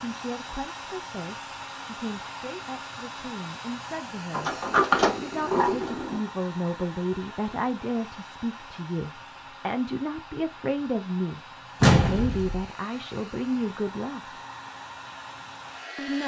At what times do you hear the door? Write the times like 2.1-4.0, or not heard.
4.3-6.2, 11.8-12.6.